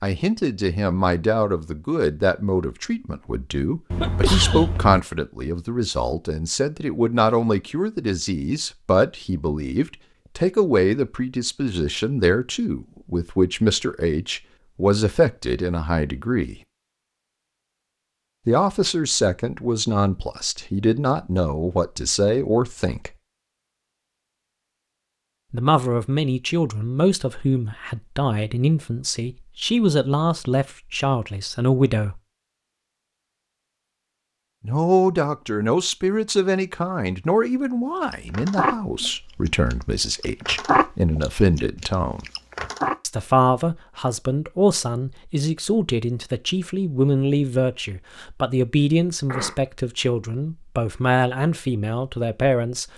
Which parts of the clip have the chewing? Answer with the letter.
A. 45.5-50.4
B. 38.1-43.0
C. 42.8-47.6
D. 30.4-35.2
B.